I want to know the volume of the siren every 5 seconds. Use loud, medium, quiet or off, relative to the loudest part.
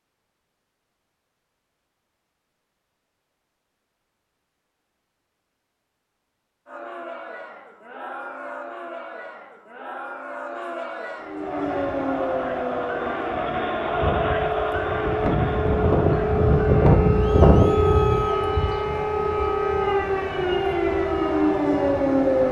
off, off, medium, loud, loud.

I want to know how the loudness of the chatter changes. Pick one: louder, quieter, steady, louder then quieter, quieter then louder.
louder then quieter.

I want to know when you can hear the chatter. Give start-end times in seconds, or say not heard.
6.7-22.4.